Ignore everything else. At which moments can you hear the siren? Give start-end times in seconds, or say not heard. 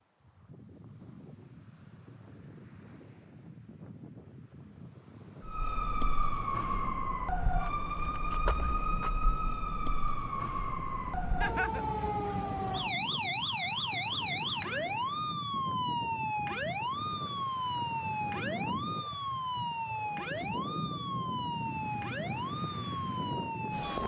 5.4-24.0.